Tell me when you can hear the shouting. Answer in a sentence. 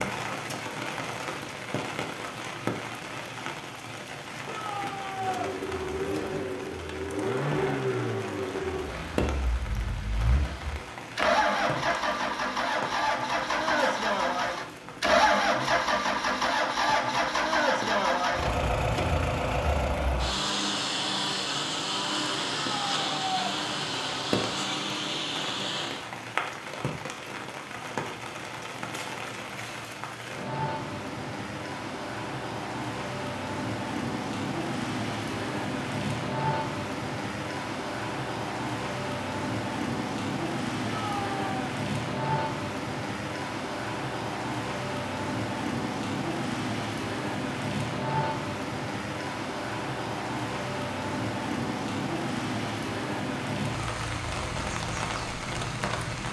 The shouting can be heard from 4.5 to 5.5 s, from 22.6 to 23.4 s and from 40.9 to 41.6 s.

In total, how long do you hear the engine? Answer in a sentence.
The engine can be heard for 21 seconds in total.